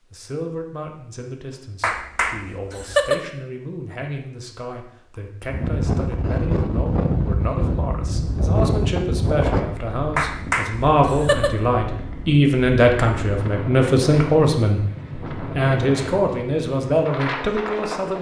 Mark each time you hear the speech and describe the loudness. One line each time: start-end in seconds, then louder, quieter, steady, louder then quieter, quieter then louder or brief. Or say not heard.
0.1-18.1 louder.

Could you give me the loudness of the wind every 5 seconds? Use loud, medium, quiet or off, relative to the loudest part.
off, loud, medium, medium.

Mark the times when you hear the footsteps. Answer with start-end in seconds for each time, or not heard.
not heard.